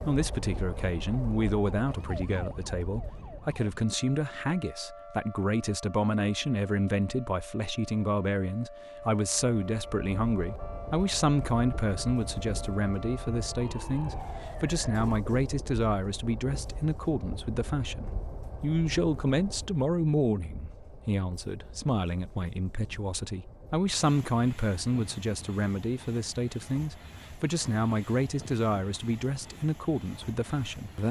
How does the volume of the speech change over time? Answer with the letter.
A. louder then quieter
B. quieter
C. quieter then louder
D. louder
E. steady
E.